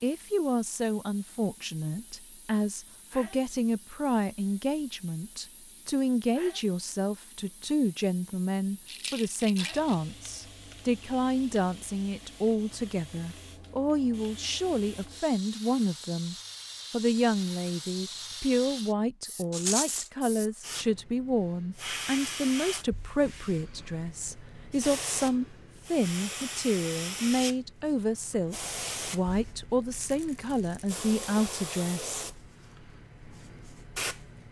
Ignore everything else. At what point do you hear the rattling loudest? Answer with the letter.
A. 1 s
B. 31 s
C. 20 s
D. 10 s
C.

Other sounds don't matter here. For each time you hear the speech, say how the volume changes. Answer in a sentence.
You can hear the speech from 0.0 to 32.2 s, at a steady volume.